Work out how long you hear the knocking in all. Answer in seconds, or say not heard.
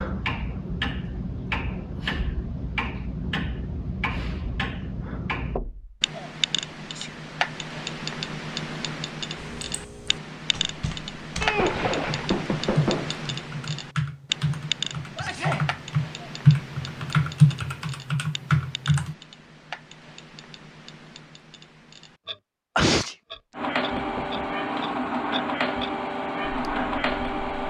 3 s.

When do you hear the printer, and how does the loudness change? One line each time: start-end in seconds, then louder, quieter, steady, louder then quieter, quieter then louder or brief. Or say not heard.
23.6-27.6 steady.